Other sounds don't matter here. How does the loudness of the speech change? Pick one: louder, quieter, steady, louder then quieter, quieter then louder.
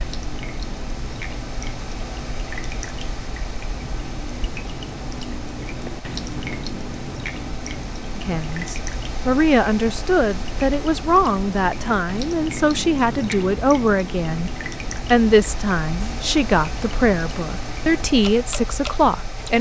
steady.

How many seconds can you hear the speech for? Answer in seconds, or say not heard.
11 s.